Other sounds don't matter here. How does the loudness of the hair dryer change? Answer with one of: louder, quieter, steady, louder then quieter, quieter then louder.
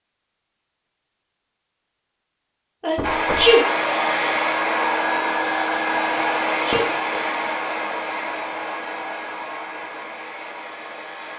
quieter.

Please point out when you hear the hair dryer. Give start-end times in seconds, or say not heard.
3.0-11.3.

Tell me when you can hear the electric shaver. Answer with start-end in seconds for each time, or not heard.
not heard.